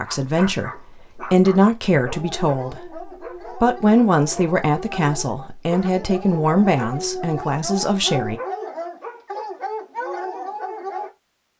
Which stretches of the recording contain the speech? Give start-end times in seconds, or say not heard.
0.0-8.4.